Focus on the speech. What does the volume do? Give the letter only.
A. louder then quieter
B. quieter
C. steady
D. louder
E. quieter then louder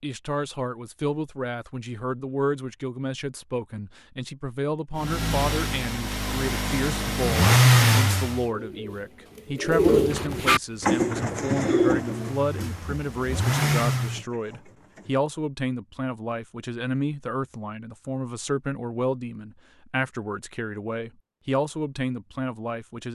C.